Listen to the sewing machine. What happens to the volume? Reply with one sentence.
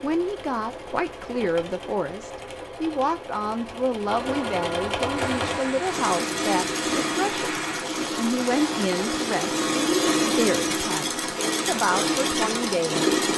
The loudness of the sewing machine goes up.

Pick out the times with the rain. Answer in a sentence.
The rain can be heard from 5.2 to 13.3 s.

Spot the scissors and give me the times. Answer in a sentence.
You can't hear the scissors here.